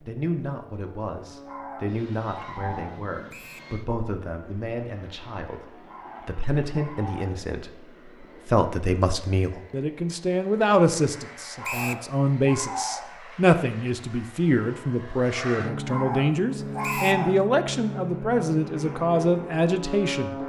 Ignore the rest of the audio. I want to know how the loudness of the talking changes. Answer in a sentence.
The loudness of the talking goes up.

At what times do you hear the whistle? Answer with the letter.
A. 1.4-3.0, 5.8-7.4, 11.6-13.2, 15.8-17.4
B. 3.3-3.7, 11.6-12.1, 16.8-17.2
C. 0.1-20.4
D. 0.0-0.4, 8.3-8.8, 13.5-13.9
B.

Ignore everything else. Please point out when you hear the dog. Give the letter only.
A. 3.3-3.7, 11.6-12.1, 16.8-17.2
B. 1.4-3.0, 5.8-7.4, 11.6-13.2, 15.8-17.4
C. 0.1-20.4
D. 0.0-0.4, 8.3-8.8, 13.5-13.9
B.